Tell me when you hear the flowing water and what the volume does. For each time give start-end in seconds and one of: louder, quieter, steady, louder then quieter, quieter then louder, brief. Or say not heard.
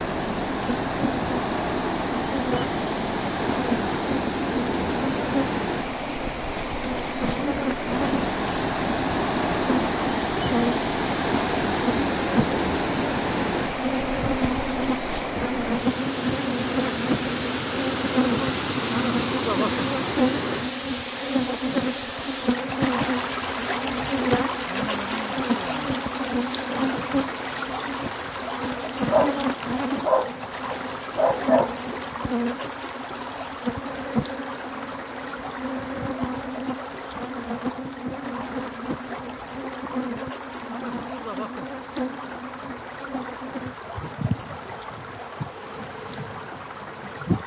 0.0-47.4 quieter.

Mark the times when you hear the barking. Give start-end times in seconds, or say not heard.
29.1-31.9.